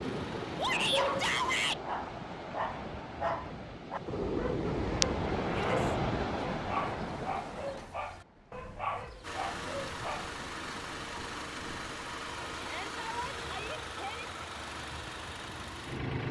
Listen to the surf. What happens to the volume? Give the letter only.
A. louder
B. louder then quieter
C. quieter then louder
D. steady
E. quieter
B.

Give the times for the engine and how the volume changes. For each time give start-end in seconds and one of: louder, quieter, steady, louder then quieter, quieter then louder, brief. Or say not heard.
0.0-1.8 brief
9.2-16.2 steady.